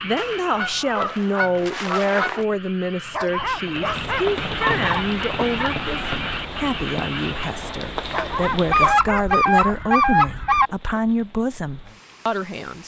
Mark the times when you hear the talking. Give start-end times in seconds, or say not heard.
0.0-12.8.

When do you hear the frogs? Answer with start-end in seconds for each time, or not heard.
0.0-7.5.